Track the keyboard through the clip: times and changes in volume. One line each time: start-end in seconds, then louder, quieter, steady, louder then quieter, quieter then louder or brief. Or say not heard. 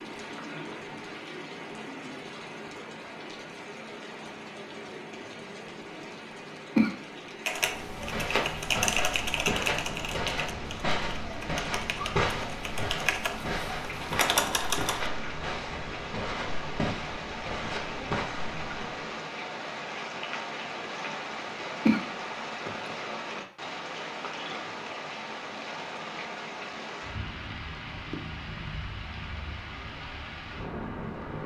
7.5-15.1 quieter then louder.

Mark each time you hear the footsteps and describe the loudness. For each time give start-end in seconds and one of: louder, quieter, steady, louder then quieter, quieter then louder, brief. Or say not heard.
7.5-19.1 steady.